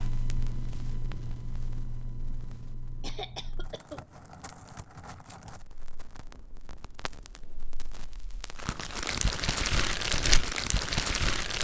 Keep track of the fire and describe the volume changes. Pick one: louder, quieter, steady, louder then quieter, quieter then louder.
quieter then louder.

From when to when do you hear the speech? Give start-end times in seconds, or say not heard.
not heard.